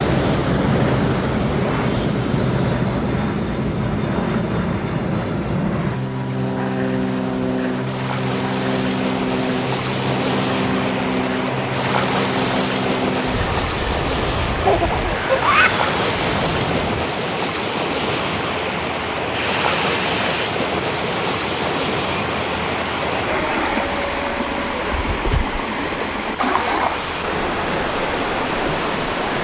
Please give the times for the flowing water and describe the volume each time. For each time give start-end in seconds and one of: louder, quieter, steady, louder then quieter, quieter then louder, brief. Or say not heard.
0.0-29.3 louder.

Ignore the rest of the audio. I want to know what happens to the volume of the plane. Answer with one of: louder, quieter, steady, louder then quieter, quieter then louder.
quieter.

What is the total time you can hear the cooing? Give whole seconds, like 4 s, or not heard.
not heard.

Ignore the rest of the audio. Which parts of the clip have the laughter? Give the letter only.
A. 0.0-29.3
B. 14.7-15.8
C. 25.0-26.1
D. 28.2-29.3
B.